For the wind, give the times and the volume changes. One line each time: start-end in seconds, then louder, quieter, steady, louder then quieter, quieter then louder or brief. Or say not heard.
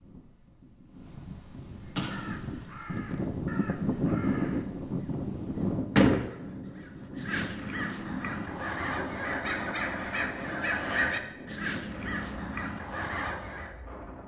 0.0-14.2 louder then quieter.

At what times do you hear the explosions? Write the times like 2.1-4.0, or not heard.
1.9-2.8.